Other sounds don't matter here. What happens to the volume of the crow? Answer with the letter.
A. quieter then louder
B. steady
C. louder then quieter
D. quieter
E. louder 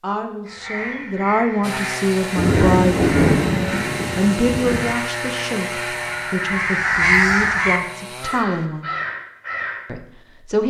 C.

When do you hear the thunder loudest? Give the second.
3 s.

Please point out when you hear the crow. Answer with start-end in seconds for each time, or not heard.
0.5-9.8.